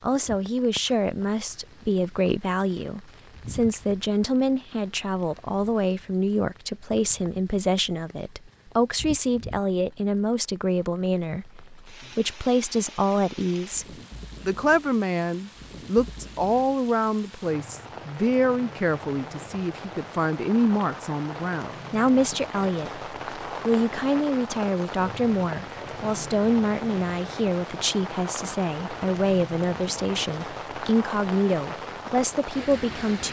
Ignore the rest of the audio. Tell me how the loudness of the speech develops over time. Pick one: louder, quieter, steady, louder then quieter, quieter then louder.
steady.